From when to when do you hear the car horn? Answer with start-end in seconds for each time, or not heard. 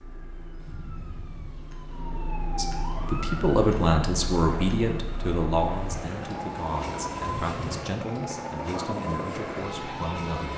0.6-2.0, 7.2-7.8.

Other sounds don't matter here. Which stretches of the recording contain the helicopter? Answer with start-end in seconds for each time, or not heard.
3.1-10.5.